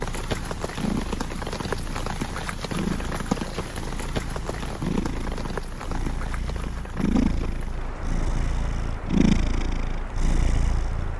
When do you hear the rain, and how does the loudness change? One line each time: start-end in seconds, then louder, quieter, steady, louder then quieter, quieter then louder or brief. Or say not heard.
0.0-11.1 quieter.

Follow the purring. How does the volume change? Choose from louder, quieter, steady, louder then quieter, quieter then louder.
louder.